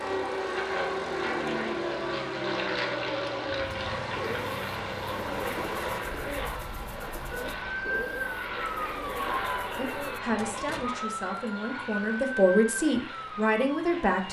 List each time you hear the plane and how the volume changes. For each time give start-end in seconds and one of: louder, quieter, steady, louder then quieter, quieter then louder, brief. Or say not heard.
0.0-14.2 quieter.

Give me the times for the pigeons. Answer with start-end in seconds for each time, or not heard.
3.5-10.2.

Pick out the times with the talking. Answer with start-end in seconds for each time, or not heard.
9.8-14.2.